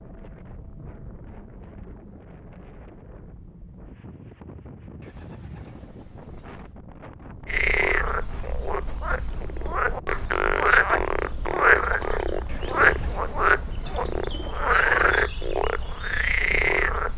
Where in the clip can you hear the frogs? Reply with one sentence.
You can hear the frogs from 7.5 to 17.1 s.